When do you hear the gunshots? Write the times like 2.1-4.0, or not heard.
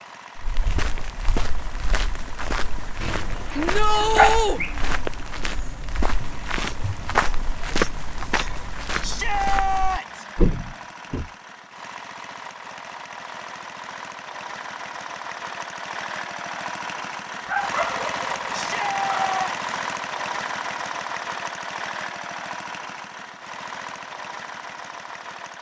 not heard.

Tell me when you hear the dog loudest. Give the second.
4 s.